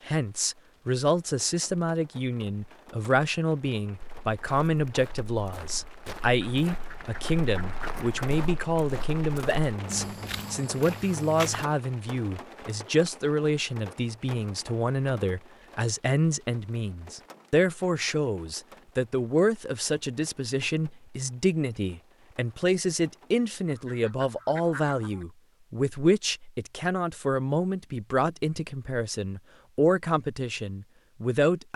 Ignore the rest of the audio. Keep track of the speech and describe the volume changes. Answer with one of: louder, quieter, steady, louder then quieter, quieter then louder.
steady.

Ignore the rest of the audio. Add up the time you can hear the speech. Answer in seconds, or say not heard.
32 s.